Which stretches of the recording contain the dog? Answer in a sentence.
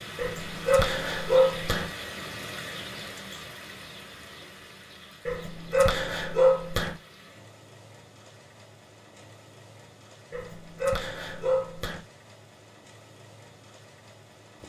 You can hear the dog from 0.1 to 1.9 s, from 5.2 to 7.0 s and from 10.3 to 12.1 s.